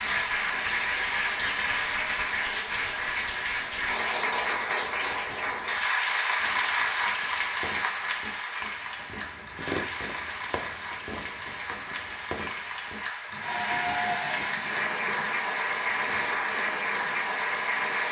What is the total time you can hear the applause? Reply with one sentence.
You can hear the applause for 18 seconds altogether.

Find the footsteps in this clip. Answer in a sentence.
The footsteps can't be heard in this clip.